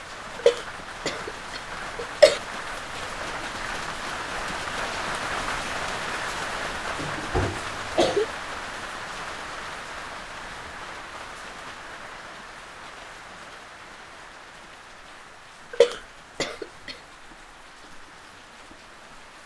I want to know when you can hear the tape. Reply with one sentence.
The tape can't be heard in this clip.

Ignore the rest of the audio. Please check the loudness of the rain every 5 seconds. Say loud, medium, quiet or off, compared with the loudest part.
loud, loud, medium, quiet.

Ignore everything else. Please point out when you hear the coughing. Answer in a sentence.
You can hear the coughing from 0.3 to 2.4 s, from 7.0 to 8.2 s and from 15.7 to 16.9 s.